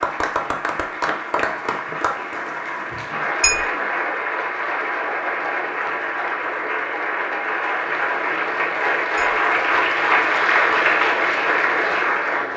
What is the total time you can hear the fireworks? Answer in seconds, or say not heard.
not heard.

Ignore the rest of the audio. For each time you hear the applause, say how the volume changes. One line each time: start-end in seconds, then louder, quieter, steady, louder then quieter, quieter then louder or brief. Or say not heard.
0.0-12.5 louder.